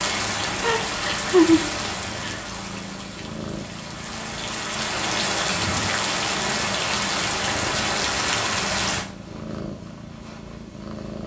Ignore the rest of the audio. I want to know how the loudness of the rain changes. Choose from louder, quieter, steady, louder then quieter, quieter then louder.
quieter then louder.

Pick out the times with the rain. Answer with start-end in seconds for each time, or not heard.
0.0-9.1.